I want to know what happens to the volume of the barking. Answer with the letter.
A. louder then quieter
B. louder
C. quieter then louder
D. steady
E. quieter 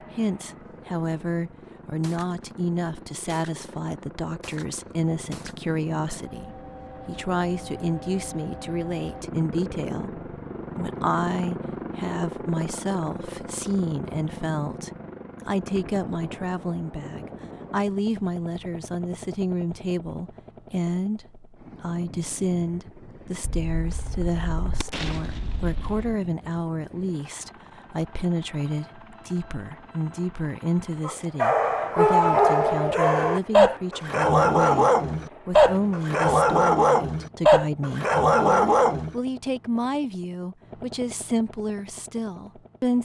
D.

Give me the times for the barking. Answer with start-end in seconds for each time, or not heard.
31.1-39.1.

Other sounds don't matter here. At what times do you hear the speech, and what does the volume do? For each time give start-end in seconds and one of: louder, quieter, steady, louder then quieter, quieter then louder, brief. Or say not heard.
0.1-43.0 steady.